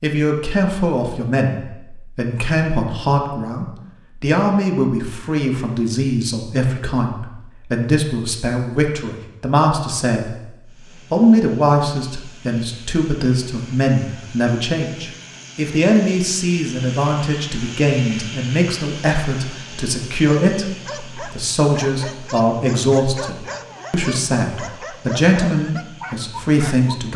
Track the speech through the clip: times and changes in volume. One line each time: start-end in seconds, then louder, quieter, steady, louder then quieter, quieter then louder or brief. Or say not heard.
0.0-10.5 steady
11.1-27.1 steady.